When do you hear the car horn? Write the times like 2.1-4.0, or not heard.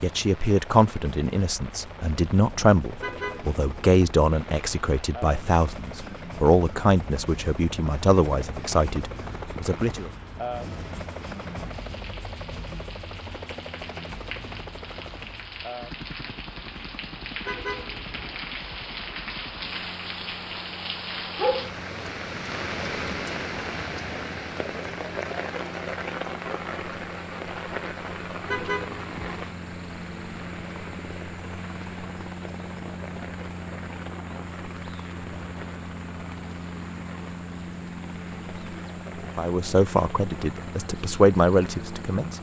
3.0-3.9, 17.4-18.4, 28.4-29.4.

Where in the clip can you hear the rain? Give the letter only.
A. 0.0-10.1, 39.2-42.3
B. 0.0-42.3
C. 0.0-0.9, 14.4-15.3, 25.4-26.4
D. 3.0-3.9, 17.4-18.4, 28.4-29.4
B.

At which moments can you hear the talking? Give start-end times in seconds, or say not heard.
0.0-10.1, 39.2-42.3.